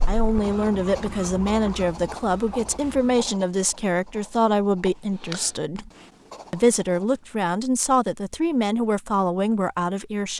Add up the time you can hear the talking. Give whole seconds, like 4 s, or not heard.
10 s.